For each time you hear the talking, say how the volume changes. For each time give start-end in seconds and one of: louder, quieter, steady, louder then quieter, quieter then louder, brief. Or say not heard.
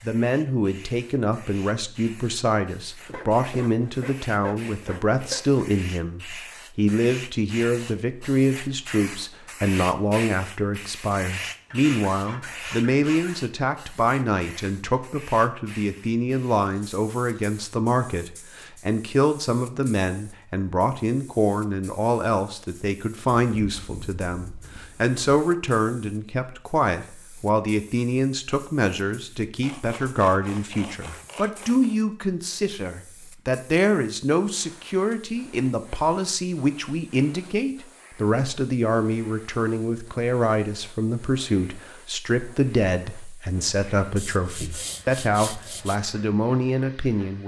0.0-47.4 steady.